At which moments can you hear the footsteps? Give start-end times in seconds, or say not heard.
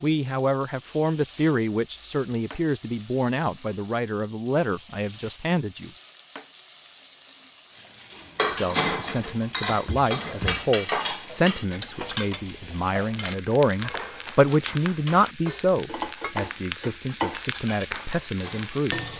not heard.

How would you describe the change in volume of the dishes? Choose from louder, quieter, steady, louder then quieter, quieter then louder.
quieter.